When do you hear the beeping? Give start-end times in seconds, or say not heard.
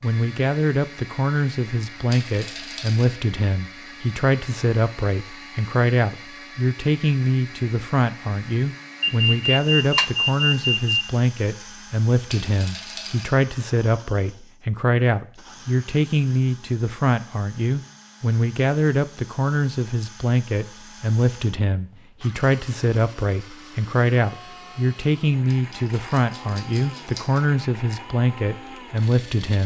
9.0-11.1.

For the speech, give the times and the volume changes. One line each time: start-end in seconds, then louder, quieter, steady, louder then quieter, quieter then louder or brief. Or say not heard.
0.0-29.6 steady.